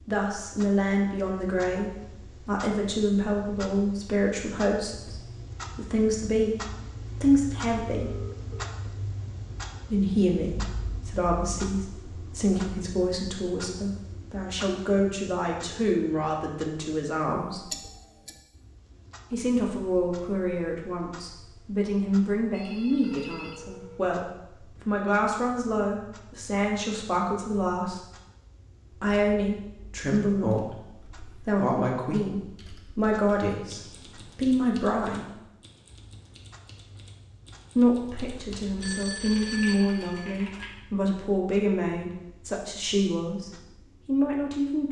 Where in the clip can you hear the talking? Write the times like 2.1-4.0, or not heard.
0.1-6.6, 7.2-8.2, 9.9-17.7, 19.3-28.0, 28.9-35.4, 37.8-44.8.